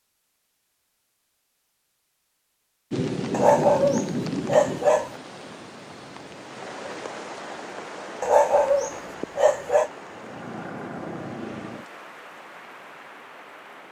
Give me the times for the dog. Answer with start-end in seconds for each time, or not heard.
3.3-5.1, 8.2-9.9.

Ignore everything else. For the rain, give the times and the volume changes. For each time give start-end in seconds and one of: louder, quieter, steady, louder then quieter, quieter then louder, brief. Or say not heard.
2.9-13.8 quieter.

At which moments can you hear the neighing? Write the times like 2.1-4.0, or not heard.
not heard.